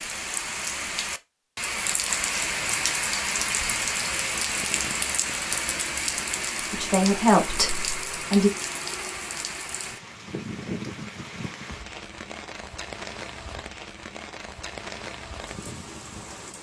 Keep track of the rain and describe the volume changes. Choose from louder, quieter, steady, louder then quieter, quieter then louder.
quieter.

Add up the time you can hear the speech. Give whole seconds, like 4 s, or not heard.
2 s.